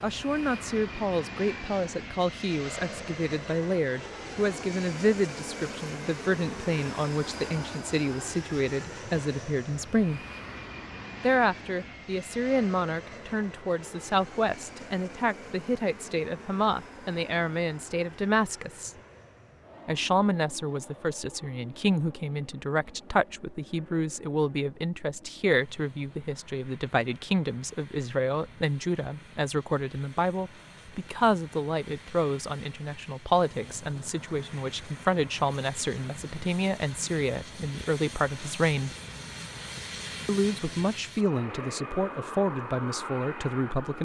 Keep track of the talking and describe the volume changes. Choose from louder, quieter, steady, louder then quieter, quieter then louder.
steady.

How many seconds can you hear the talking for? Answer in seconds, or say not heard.
41 s.